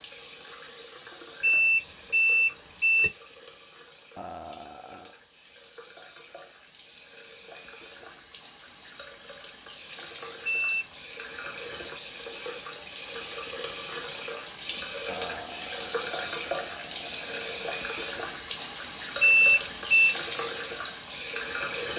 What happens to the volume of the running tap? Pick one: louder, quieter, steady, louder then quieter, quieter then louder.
louder.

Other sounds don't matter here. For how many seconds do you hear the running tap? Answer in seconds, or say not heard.
22 s.